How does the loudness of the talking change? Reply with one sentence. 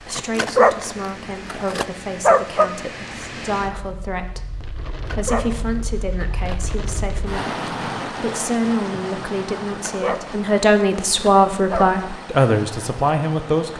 The loudness of the talking goes up.